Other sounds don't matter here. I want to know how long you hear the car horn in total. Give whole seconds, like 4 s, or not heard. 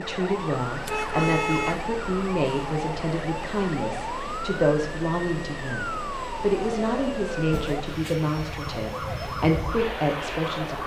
2 s.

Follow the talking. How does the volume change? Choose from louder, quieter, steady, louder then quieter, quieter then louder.
steady.